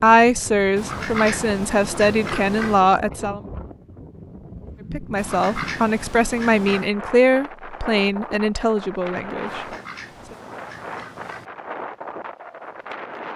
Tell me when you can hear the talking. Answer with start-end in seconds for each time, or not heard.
0.0-3.4, 4.9-9.6.